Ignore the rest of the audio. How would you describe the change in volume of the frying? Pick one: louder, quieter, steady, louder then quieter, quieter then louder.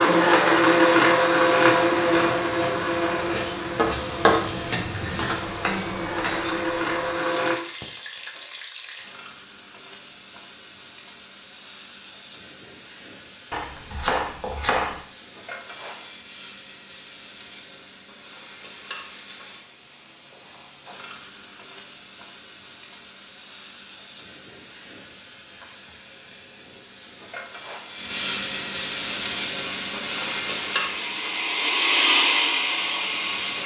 quieter then louder.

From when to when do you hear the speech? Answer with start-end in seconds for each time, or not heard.
not heard.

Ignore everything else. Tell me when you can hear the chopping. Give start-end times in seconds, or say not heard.
13.5-15.0.